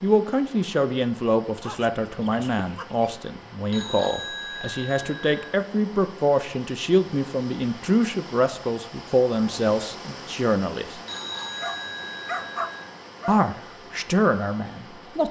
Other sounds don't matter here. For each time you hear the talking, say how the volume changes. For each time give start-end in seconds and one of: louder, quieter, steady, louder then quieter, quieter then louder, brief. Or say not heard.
0.0-11.0 steady
13.2-15.2 brief.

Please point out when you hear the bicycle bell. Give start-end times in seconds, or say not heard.
3.7-5.5, 11.1-12.8.